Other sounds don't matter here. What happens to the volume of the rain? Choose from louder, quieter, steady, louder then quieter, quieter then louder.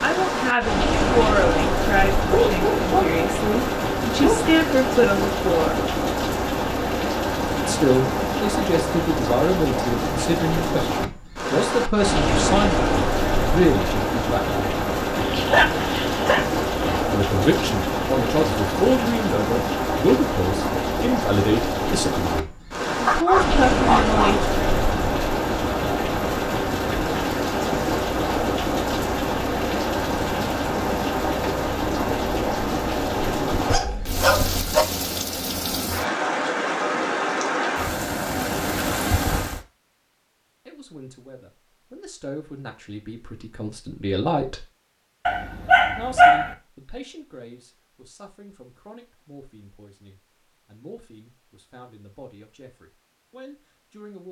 steady.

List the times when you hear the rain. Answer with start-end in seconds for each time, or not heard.
0.0-39.6.